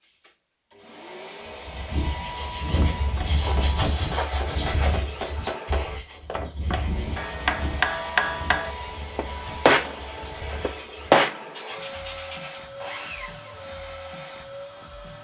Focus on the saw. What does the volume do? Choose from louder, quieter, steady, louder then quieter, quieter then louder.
quieter then louder.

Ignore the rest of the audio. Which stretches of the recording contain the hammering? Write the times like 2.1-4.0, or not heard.
2.8-11.4.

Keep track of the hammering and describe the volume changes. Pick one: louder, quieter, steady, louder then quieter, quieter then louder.
louder.